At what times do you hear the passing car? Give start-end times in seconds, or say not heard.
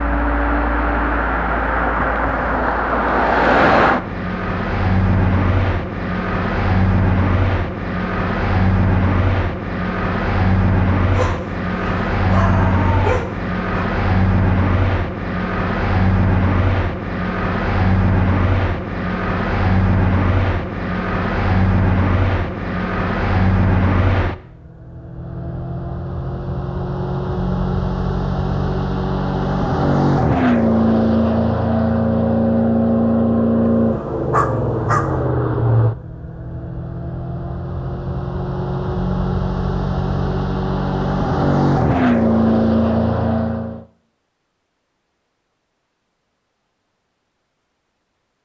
0.0-43.9.